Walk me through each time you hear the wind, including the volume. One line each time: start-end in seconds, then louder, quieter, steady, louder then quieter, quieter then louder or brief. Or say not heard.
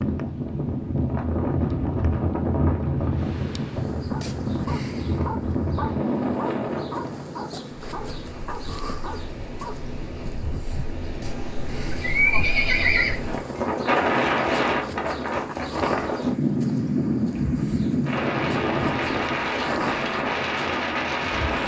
0.0-21.6 quieter then louder.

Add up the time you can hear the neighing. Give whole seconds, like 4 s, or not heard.
2 s.